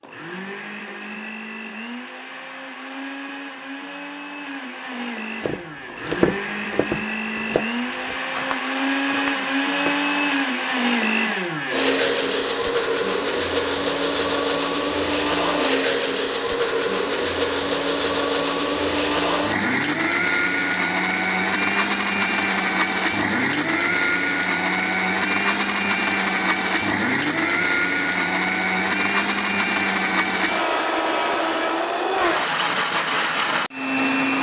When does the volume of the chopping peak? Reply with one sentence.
The loudest moment of the chopping is at 6 seconds.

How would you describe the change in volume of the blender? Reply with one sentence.
The loudness of the blender goes up.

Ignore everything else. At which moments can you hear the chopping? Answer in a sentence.
You can hear the chopping from 5.4 to 10.0 s.